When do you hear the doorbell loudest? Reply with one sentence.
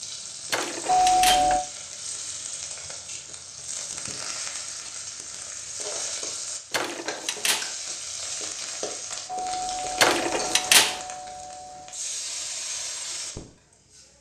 The loudest moment of the doorbell is at 1 second.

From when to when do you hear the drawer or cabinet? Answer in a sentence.
You can hear the drawer or cabinet from 0.5 to 1.5 s, from 6.7 to 7.8 s and from 10.0 to 11.0 s.